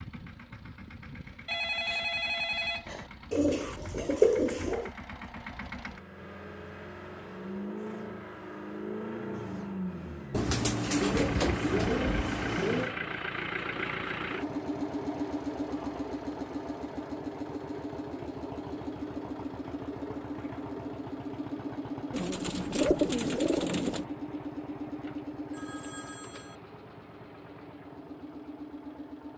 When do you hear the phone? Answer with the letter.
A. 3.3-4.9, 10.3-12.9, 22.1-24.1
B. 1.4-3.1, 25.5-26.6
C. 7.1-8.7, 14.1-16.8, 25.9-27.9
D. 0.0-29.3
B.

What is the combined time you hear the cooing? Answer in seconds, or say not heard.
6 s.